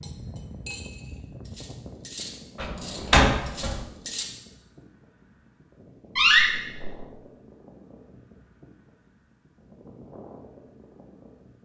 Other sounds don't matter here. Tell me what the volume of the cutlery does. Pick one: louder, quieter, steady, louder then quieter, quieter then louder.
quieter then louder.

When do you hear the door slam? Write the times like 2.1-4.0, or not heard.
2.6-3.8, 6.2-7.0.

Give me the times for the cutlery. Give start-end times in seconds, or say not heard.
0.0-4.2.